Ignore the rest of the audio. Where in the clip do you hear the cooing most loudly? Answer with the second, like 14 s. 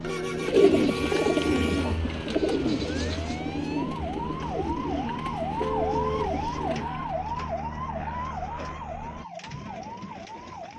1 s.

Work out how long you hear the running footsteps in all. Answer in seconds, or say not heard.
not heard.